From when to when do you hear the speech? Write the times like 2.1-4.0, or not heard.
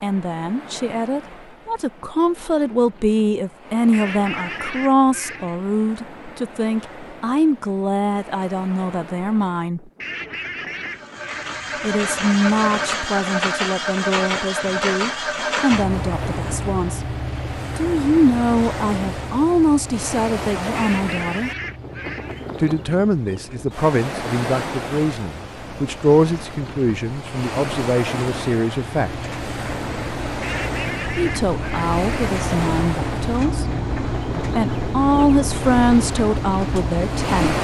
0.0-9.8, 11.8-17.0, 17.8-21.5, 22.6-29.1, 31.1-37.5.